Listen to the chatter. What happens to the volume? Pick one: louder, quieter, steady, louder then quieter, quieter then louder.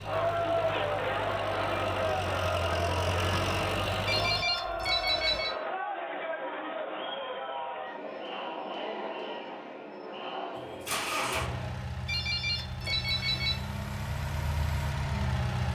quieter.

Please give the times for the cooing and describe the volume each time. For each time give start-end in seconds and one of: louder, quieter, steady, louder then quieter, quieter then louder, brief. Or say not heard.
not heard.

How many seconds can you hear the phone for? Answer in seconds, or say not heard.
3 s.